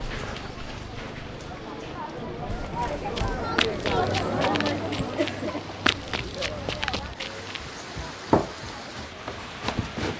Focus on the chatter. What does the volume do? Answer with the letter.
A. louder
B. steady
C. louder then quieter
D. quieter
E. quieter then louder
C.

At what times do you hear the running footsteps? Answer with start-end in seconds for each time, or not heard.
2.5-10.1.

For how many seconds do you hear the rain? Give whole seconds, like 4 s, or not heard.
10 s.